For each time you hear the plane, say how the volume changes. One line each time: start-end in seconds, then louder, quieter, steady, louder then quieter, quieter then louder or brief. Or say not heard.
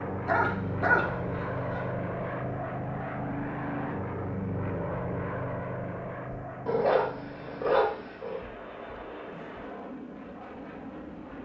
0.0-11.4 quieter.